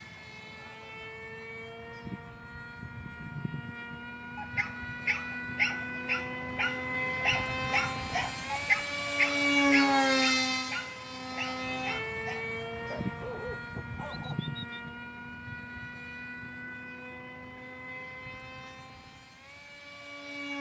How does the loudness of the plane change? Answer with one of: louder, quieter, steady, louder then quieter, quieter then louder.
louder then quieter.